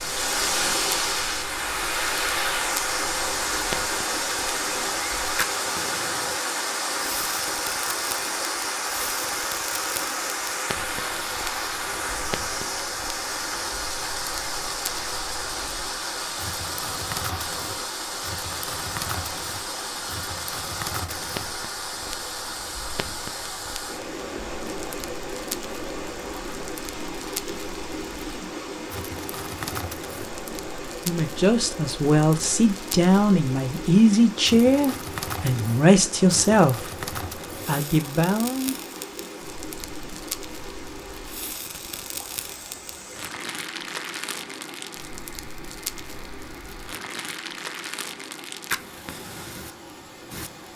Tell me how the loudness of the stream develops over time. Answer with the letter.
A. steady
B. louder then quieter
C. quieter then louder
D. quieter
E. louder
D.